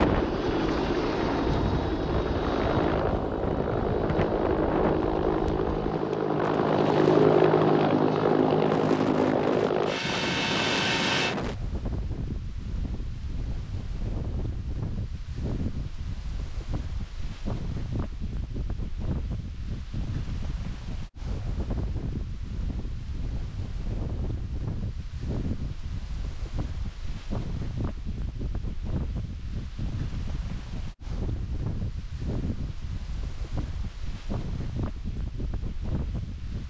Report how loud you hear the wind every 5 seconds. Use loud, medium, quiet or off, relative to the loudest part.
loud, loud, loud, medium, medium, medium, medium, medium.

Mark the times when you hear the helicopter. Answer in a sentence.
The helicopter can be heard from 0.0 to 11.3 s.